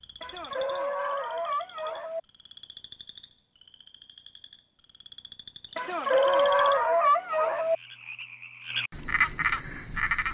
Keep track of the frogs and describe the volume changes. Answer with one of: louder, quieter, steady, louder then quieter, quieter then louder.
louder.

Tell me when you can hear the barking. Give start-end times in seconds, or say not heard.
0.2-2.2, 5.8-7.8.